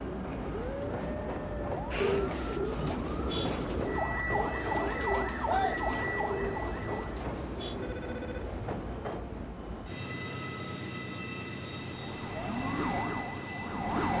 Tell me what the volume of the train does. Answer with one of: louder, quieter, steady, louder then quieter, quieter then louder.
steady.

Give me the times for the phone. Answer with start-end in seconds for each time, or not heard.
1.9-3.0, 7.8-8.6.